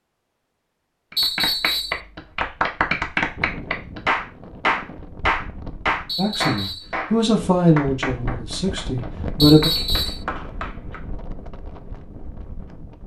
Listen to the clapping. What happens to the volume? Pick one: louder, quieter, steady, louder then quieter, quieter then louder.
quieter.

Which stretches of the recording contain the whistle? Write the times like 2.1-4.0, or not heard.
1.1-2.0, 6.0-7.0, 9.4-10.2.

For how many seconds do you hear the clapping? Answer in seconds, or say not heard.
10 s.